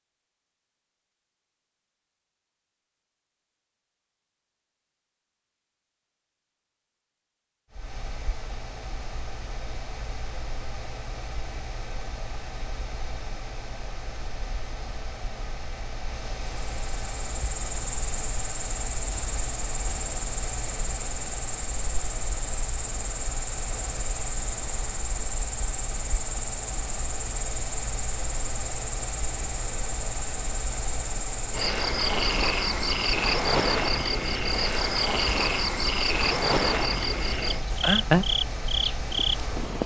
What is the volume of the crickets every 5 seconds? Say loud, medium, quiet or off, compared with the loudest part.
off, off, off, medium, medium, medium, loud, loud.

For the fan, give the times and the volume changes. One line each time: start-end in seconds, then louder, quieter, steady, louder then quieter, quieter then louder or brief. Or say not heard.
7.7-39.8 steady.